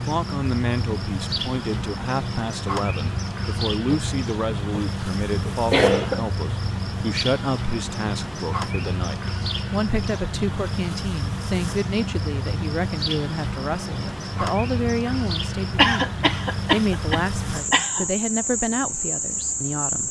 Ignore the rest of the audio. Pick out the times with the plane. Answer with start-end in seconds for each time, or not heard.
not heard.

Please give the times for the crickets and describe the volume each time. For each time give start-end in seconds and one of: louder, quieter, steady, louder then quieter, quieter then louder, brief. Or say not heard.
0.0-20.0 steady.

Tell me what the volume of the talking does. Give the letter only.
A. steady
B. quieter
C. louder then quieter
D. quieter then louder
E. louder
A.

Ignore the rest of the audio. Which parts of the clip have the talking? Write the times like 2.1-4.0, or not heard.
0.1-20.0.